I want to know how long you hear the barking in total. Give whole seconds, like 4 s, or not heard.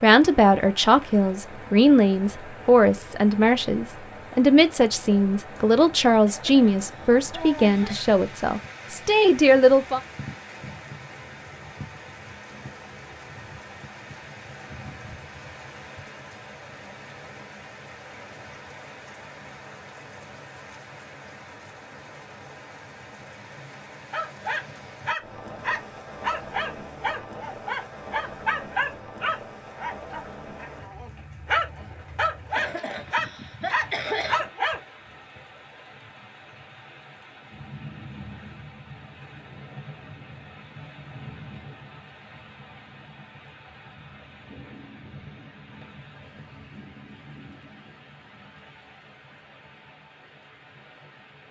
11 s.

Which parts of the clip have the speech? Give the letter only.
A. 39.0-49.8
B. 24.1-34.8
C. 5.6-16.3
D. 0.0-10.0
D.